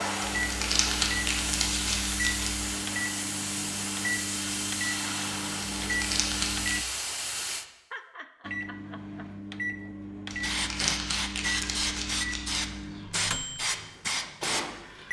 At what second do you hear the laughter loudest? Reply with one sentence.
The loudest moment of the laughter is at 8 seconds.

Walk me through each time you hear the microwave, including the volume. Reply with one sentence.
You can hear the microwave from 0.0 to 6.8 s, at a steady volume; and from 8.4 to 15.0 s, at a steady volume.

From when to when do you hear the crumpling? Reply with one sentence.
You can hear the crumpling from 0.2 to 2.6 s, from 5.8 to 6.8 s and from 10.2 to 12.7 s.